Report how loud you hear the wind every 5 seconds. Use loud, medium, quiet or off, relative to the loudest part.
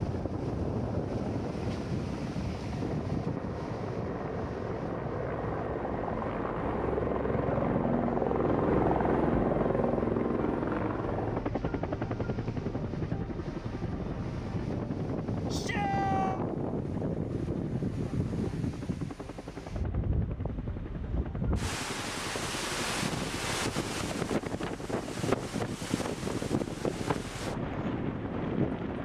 loud, medium, medium, loud, loud, loud.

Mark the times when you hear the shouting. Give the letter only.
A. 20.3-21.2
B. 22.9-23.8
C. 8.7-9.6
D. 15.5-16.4
D.